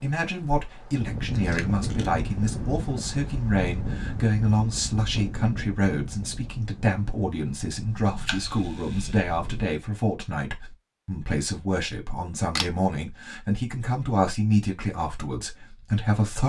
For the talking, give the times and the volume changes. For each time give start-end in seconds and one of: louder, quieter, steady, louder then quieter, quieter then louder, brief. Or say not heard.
0.0-16.4 steady.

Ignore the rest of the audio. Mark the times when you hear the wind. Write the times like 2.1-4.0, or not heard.
0.2-9.7.